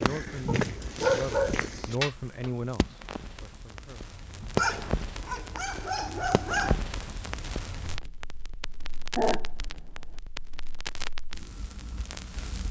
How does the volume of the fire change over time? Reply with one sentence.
The volume of the fire goes up, then down.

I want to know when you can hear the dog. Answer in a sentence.
The dog can be heard from 0.5 to 2.5 s, from 4.5 to 6.8 s and from 9.2 to 10.2 s.